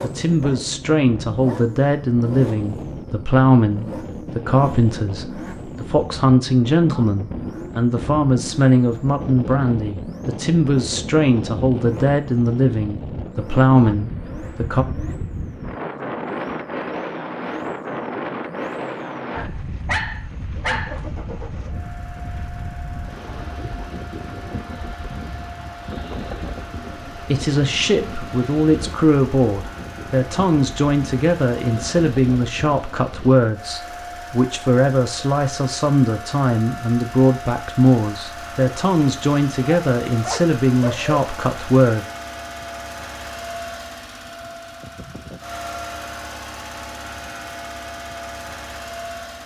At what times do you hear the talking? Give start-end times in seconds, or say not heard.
0.0-14.8, 27.1-42.0.